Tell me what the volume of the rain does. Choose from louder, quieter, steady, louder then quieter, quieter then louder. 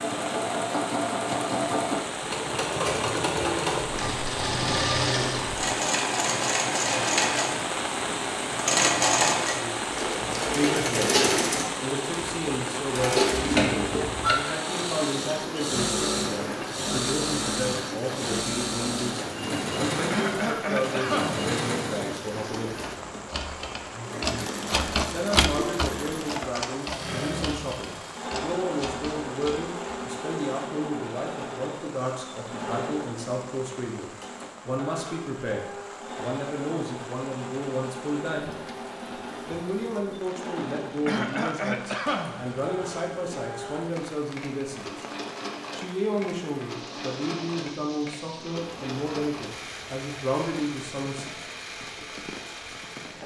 quieter.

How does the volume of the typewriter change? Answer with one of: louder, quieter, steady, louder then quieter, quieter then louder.
louder then quieter.